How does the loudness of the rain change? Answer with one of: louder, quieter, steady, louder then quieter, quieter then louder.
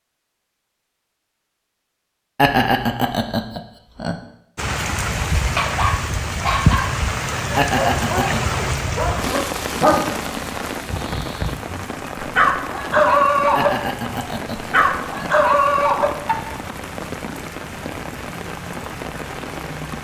quieter.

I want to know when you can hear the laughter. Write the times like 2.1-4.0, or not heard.
2.4-4.2, 7.5-8.4, 13.6-15.3.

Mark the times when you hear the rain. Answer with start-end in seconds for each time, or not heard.
4.5-19.9.